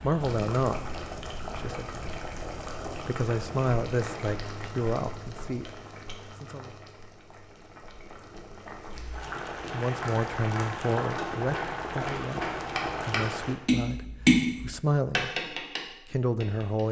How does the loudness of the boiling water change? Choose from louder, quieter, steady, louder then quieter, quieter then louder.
quieter then louder.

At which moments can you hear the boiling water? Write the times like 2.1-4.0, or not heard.
0.0-13.6.